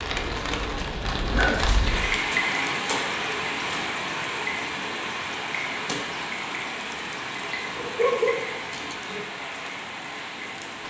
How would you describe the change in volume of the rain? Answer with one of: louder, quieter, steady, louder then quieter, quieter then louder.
quieter.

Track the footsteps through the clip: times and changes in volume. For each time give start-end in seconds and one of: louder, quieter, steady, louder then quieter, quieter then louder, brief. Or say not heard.
not heard.